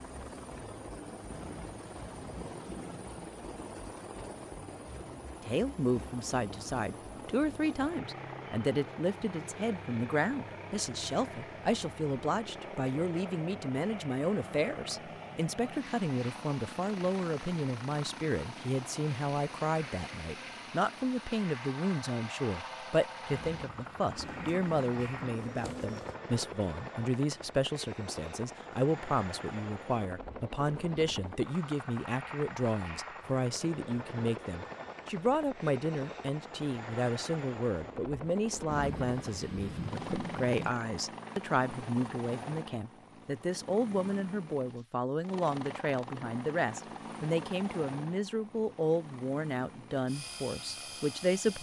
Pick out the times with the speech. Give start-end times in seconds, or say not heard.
5.4-51.5.